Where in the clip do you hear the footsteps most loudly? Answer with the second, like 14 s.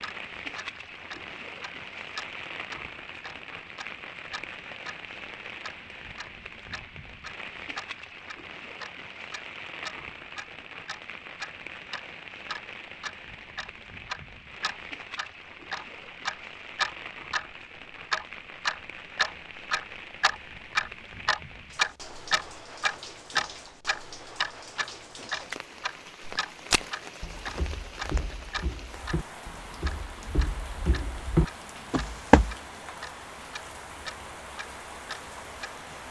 32 s.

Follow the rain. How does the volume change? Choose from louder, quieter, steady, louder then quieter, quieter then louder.
steady.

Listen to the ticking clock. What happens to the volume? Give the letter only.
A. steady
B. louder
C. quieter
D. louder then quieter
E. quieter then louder
D.